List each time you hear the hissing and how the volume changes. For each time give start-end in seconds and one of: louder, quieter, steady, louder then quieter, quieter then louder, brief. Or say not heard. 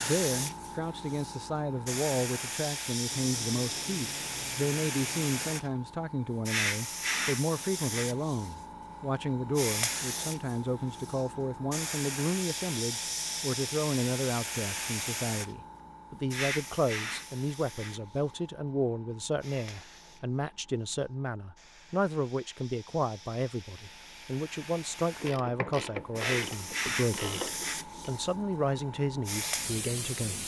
0.0-30.4 quieter then louder.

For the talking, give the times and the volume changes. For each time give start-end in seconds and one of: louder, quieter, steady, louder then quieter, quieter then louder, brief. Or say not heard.
0.0-30.4 steady.